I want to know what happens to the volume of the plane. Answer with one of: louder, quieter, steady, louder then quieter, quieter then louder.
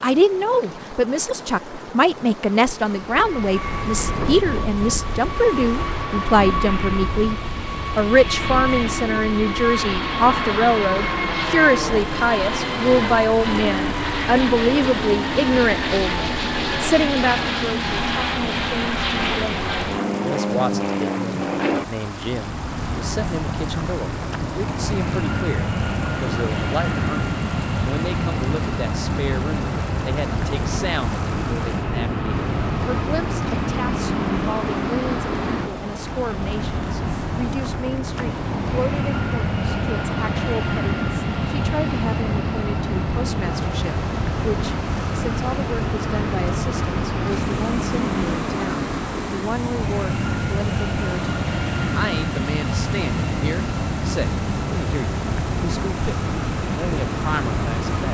steady.